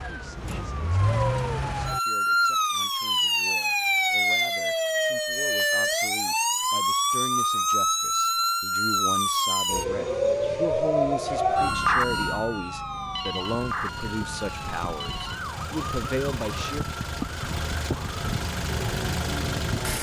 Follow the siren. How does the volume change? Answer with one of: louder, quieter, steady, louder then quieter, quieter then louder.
quieter.